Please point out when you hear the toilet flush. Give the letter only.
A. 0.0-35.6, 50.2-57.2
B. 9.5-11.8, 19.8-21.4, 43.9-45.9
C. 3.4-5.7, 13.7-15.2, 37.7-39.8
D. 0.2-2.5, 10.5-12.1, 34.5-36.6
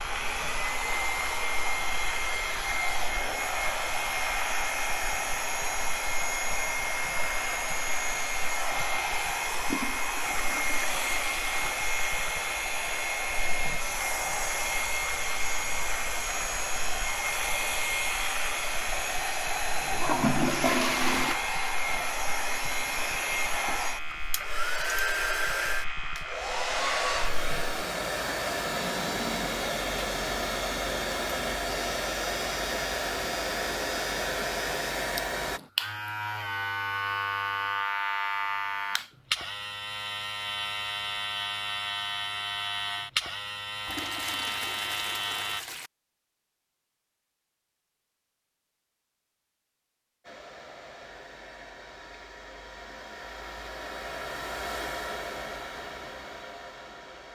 B.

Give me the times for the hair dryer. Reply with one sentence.
The hair dryer can be heard from 0.0 to 35.6 s and from 50.2 to 57.2 s.